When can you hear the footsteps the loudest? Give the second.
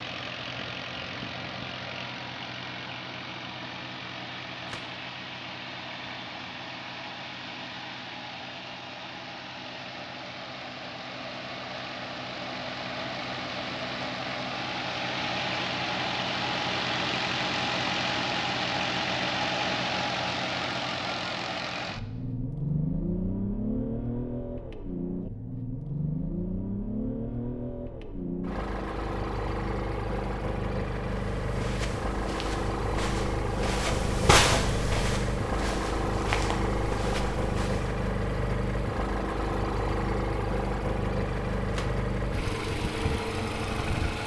34 s.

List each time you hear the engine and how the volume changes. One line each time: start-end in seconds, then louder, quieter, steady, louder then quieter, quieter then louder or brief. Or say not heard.
0.0-44.2 louder.